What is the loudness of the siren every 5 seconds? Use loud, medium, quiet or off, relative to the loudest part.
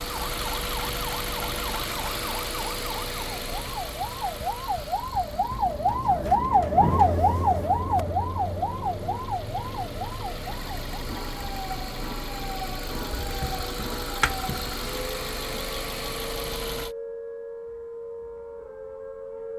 medium, loud, quiet, quiet.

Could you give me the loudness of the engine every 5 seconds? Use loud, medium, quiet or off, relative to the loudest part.
loud, quiet, loud, loud.